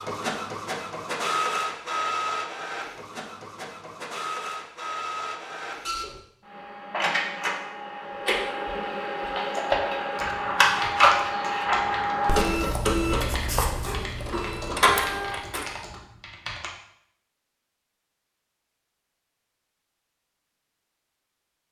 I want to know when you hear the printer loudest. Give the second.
11 s.